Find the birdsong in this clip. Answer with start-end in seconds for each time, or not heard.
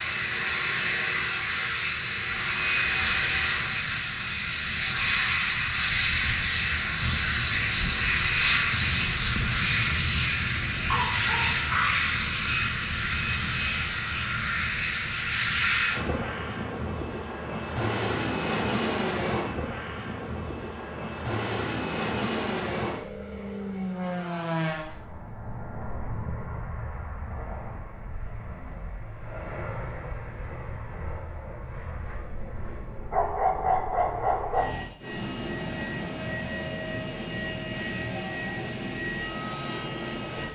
not heard.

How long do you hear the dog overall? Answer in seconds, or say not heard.
3 s.